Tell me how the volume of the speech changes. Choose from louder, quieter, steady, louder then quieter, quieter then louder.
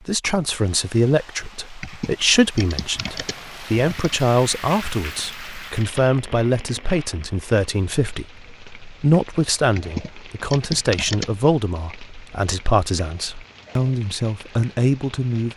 steady.